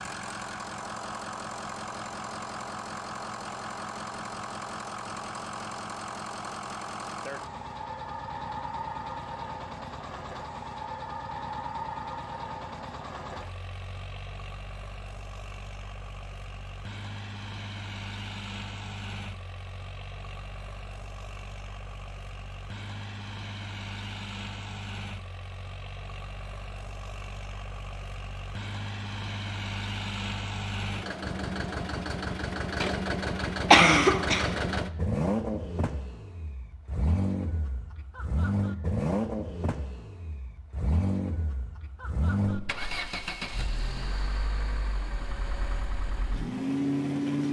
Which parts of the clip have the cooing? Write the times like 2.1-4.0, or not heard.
not heard.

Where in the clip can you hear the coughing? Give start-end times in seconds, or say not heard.
33.7-34.5.